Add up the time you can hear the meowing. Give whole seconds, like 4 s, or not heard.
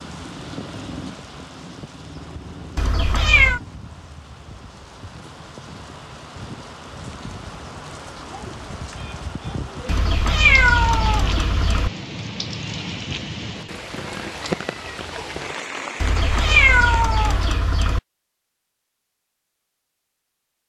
5 s.